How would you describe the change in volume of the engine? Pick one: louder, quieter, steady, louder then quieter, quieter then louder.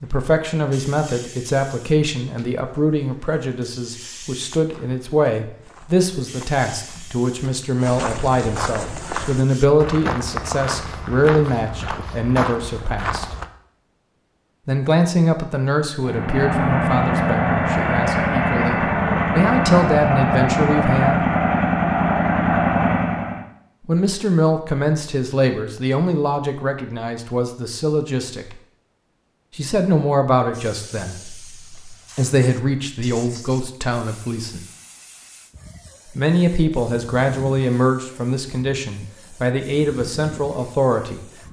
steady.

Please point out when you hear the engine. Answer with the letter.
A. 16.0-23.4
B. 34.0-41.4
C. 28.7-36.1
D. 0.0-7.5
A.